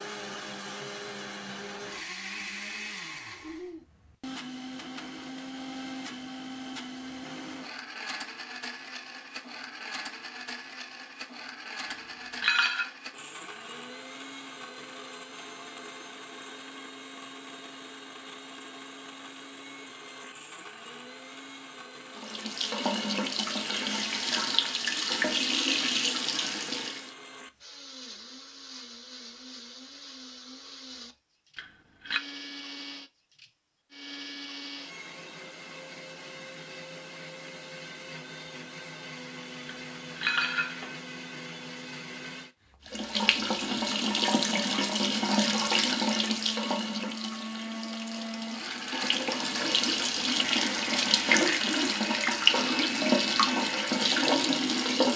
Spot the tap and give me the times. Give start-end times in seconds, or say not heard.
22.1-27.1, 42.9-55.1.